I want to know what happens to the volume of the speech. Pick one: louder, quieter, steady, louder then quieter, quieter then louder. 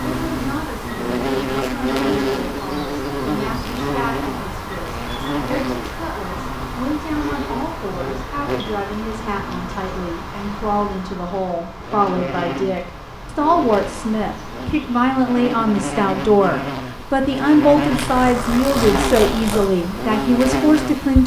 louder.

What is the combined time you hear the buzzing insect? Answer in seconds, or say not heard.
21 s.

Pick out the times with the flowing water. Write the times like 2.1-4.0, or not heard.
not heard.